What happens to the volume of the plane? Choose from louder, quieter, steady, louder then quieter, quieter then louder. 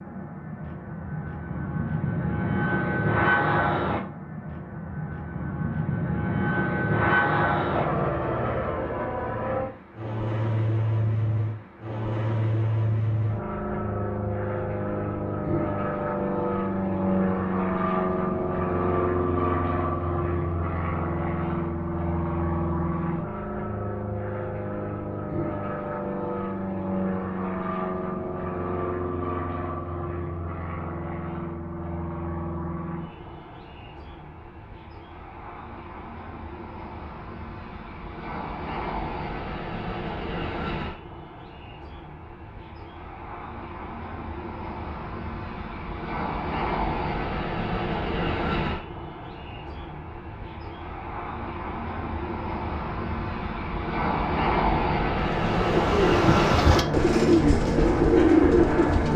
quieter then louder.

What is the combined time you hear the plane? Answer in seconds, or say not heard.
59 s.